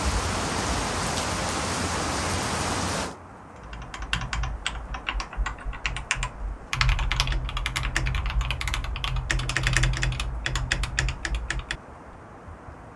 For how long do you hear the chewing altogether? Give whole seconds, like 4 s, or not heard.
not heard.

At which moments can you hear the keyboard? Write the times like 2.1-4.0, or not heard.
3.6-11.8.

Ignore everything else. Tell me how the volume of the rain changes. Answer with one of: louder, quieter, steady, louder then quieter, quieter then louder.
quieter.